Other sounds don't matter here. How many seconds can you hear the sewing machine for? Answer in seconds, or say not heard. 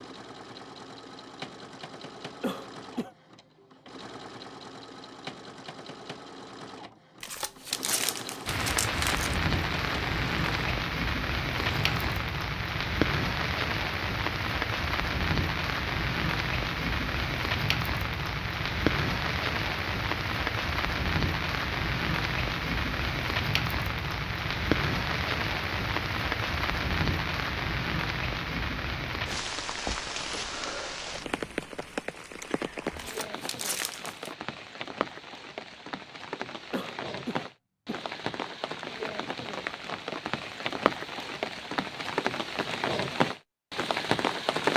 12 s.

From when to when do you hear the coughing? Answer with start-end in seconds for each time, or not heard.
2.4-3.1, 36.7-38.0.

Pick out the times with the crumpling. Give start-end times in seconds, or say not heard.
7.2-9.4, 33.0-34.3.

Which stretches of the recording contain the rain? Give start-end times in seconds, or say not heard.
8.4-44.7.